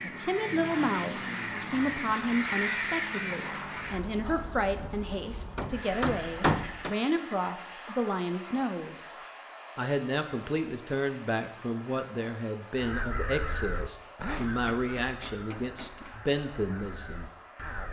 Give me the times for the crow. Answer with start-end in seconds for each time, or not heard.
0.0-4.6, 12.8-17.8.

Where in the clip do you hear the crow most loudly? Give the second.
3 s.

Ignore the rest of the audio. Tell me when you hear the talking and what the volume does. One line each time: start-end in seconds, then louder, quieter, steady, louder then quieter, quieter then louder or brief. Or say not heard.
0.0-9.2 steady
9.8-17.3 steady.